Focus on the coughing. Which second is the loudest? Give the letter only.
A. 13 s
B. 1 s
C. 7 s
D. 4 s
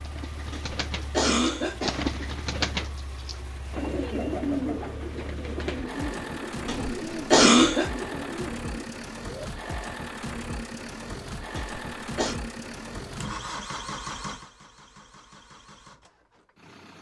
C.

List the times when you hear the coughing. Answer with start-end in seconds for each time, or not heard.
0.5-2.0, 6.7-7.9, 11.6-12.4.